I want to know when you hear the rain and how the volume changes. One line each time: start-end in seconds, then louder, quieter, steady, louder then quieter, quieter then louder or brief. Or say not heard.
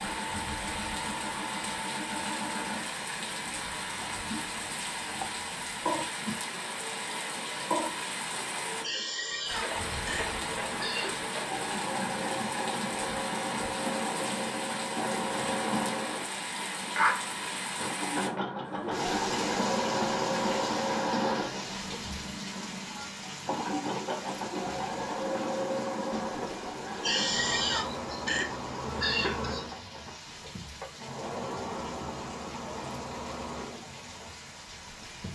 0.0-35.3 quieter.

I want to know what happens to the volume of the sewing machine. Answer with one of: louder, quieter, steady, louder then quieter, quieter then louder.
louder then quieter.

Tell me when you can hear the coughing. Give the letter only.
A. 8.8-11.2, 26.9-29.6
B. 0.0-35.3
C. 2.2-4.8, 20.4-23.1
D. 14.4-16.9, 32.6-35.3
A.